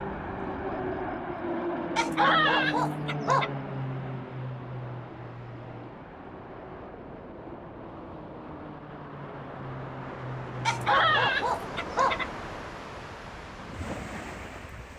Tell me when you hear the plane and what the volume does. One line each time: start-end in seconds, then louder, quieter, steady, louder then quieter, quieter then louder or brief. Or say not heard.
0.0-11.3 quieter then louder.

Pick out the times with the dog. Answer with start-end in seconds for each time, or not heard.
1.9-3.5, 10.7-12.4.